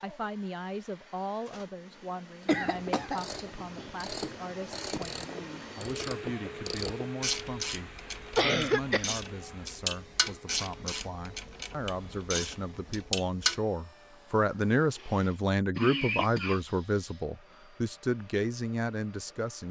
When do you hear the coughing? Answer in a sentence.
The coughing can be heard from 2.5 to 3.2 s, from 8.3 to 9.1 s and from 14.9 to 16.8 s.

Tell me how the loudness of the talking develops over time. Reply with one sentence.
The volume of the talking goes up.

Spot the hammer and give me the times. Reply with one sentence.
You can't hear the hammer here.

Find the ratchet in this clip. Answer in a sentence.
You can hear the ratchet from 2.4 to 13.6 s.